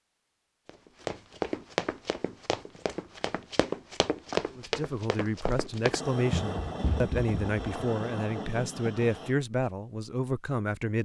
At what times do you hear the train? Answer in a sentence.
You can hear the train from 5.9 to 9.3 s.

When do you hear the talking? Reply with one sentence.
The talking can be heard from 4.5 to 11.0 s.